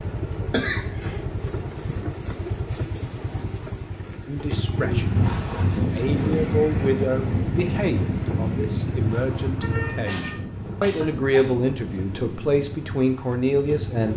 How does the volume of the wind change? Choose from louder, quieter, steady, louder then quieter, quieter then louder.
quieter.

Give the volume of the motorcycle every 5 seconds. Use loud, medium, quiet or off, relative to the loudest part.
loud, loud, medium.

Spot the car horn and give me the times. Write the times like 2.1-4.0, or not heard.
9.6-10.4.